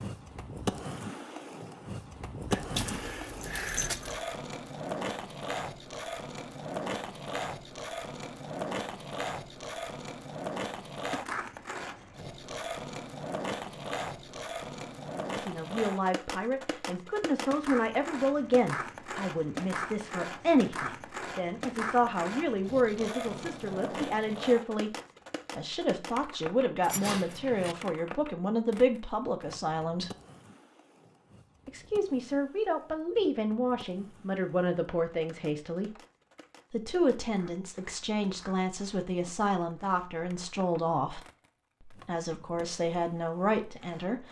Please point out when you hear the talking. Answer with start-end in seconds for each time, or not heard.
15.3-24.9, 25.6-30.1, 31.6-35.9, 36.7-41.2, 41.9-44.2.